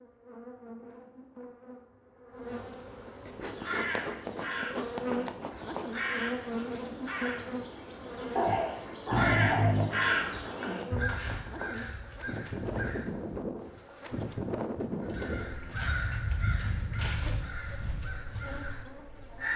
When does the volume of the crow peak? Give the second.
10 s.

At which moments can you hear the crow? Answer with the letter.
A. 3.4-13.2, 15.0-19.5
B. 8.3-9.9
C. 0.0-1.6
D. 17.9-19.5
A.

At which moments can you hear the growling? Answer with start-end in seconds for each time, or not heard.
8.3-9.9.